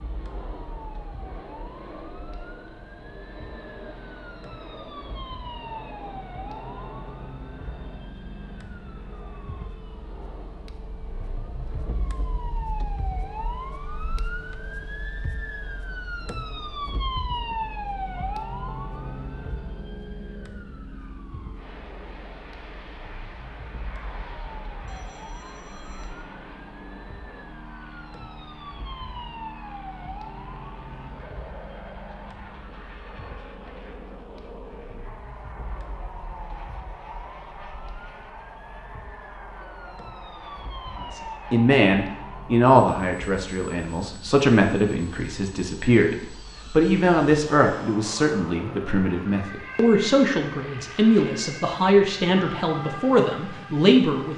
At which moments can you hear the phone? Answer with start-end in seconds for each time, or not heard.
24.9-26.1.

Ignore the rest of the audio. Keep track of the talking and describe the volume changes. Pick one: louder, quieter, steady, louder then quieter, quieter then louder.
steady.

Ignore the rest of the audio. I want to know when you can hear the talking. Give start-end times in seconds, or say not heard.
41.1-54.3.